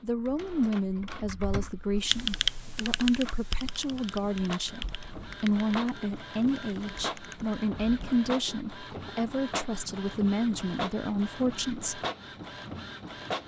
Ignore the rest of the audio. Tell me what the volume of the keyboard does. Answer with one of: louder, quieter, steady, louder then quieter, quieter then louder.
louder then quieter.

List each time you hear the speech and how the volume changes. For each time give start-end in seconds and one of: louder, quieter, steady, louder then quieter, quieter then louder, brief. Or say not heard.
0.0-12.0 steady.